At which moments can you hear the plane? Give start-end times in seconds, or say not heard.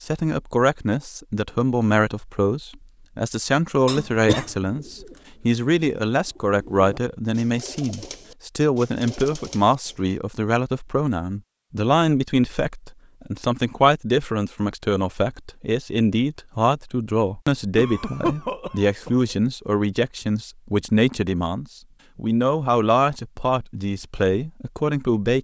not heard.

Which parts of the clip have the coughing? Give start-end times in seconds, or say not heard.
3.9-4.5, 17.8-19.2.